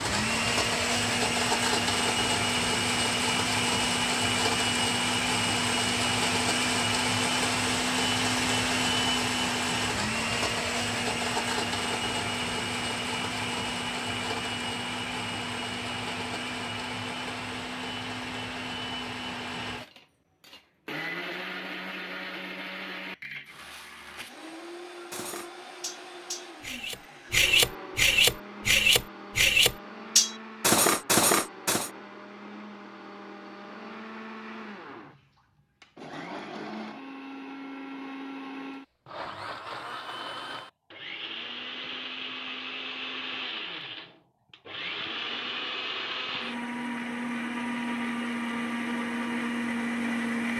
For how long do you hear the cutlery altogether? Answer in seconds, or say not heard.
7 s.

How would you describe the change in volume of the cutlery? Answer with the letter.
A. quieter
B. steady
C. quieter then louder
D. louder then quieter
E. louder
E.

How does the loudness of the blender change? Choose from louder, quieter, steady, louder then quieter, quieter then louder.
quieter then louder.